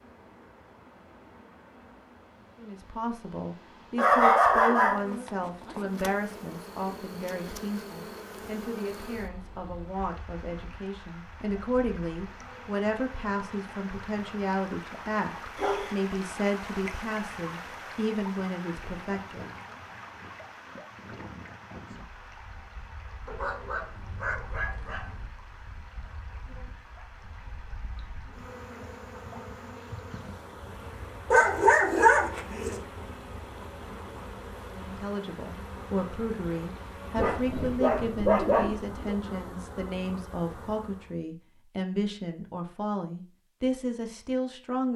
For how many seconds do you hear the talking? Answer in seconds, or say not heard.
27 s.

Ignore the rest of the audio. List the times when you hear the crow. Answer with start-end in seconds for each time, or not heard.
not heard.